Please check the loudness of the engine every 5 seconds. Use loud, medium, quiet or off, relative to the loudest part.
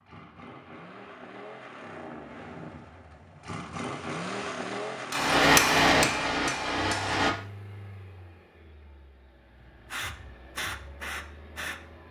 loud, medium, quiet.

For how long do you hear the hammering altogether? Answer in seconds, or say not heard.
2 s.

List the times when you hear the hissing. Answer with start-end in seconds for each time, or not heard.
9.9-11.8.